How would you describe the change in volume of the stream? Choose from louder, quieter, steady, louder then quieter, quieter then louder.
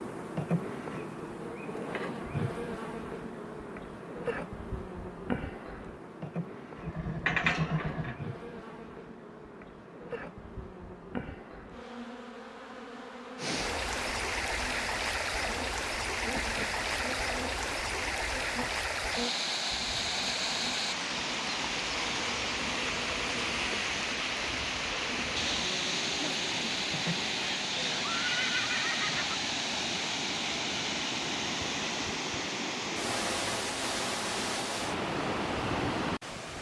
steady.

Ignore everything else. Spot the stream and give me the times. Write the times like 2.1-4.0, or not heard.
13.3-36.5.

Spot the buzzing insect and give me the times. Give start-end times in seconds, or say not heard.
0.0-27.4.